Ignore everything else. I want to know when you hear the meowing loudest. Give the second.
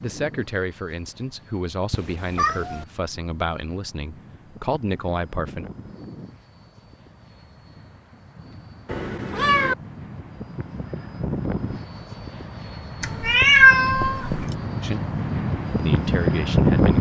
14 s.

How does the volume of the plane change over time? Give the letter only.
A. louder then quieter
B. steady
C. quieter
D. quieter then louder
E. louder
E.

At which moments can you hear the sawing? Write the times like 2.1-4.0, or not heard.
not heard.